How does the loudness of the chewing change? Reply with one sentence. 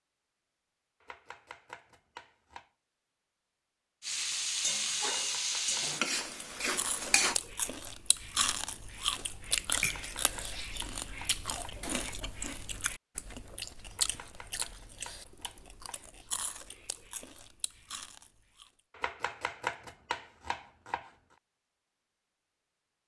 The loudness of the chewing goes down.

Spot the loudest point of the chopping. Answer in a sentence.
The loudest moment of the chopping is at 20 seconds.